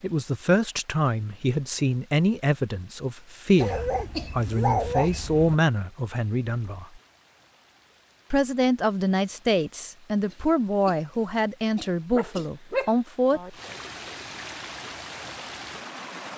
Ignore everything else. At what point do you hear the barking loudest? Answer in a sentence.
The loudest moment of the barking is at 5 seconds.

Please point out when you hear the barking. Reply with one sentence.
You can hear the barking from 3.5 to 5.5 s and from 12.2 to 13.5 s.